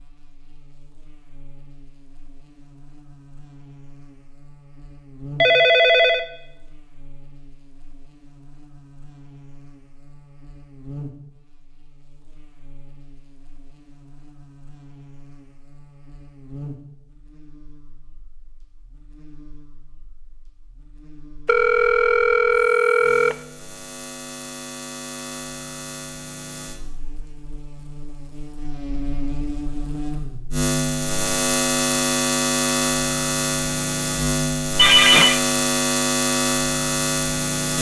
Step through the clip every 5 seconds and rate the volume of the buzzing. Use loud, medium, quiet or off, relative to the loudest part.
quiet, quiet, quiet, quiet, quiet, quiet, loud, loud.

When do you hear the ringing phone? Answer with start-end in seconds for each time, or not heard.
5.4-6.2, 21.4-23.4, 34.8-35.4.